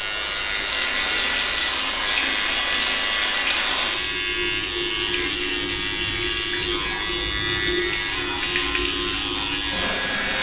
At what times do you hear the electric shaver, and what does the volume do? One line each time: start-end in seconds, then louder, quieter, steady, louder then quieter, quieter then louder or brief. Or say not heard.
0.0-10.3 steady.